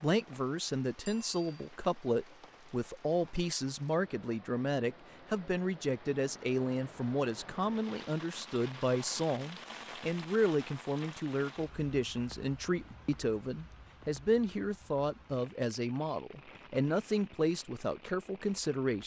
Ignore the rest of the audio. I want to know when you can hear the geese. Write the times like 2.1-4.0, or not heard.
not heard.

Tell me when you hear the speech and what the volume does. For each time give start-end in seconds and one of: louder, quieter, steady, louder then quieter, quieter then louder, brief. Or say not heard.
0.0-19.0 steady.